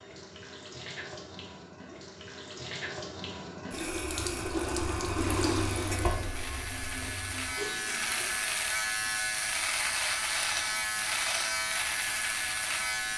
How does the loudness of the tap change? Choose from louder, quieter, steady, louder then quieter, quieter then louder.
louder then quieter.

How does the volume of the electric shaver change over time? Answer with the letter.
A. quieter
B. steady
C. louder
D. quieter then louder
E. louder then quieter
C.